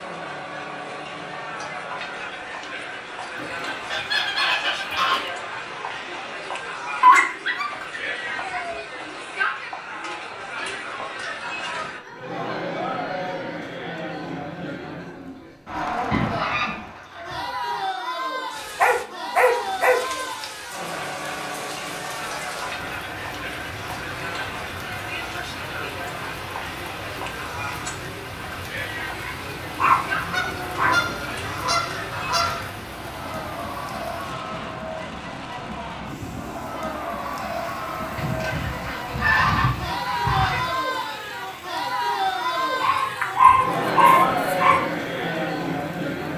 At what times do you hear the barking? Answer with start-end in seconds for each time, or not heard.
7.0-8.8, 18.8-20.0, 29.8-31.3, 42.8-44.8.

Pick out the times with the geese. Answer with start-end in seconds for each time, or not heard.
3.4-5.3, 16.1-17.9, 29.9-32.6, 38.1-40.8.